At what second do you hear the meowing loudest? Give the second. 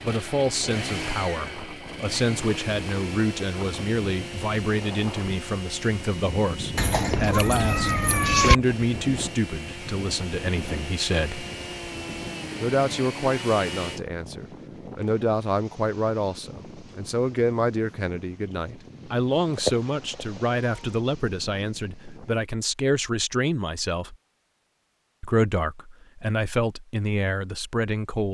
8 s.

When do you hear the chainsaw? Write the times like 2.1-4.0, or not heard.
0.0-6.9, 8.6-14.1.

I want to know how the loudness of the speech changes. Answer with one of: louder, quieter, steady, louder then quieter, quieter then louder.
steady.